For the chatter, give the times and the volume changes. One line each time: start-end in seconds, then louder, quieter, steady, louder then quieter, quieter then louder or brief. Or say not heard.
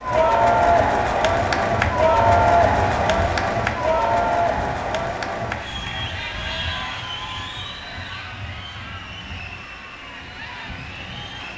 0.0-11.5 quieter.